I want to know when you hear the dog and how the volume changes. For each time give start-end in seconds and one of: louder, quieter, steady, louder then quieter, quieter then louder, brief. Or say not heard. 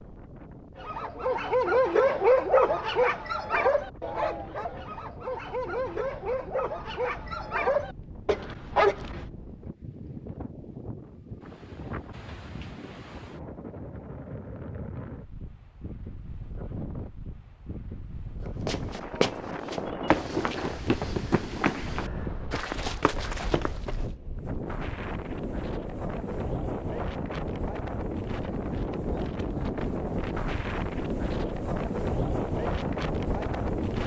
0.8-9.2 quieter then louder.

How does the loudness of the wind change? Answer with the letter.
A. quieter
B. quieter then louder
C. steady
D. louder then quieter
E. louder
E.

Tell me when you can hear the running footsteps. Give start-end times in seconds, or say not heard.
18.6-24.1.